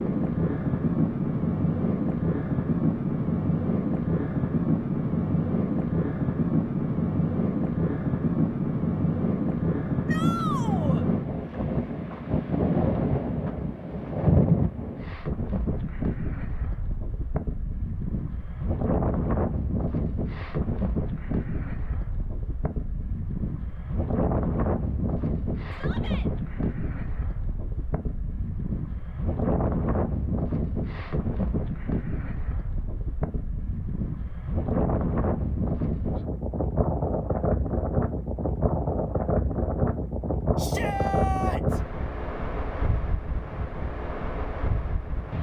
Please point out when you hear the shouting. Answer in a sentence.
The shouting can be heard from 10.1 to 11.1 s, from 25.7 to 26.3 s and from 40.5 to 41.8 s.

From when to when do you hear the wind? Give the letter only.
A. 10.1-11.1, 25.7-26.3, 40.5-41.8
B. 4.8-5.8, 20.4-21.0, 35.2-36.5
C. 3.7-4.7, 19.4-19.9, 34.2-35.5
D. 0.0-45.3
D.